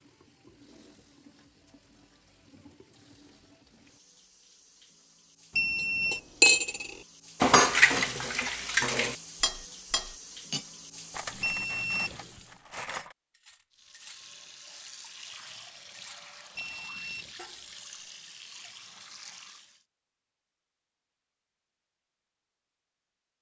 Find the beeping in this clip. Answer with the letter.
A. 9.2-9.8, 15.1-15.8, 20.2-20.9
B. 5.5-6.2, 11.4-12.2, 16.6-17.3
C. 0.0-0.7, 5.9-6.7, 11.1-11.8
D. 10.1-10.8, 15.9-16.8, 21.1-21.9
B.